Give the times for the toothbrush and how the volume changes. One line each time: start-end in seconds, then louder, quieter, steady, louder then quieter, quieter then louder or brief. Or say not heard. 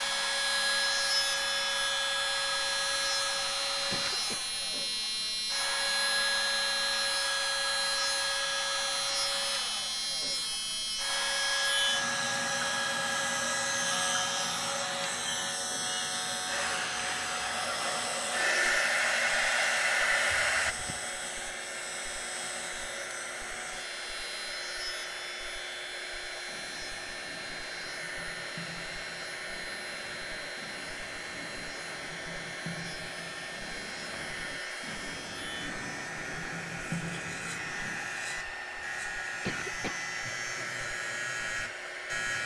26.4-38.1 louder.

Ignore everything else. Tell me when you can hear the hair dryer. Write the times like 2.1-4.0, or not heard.
0.0-42.4.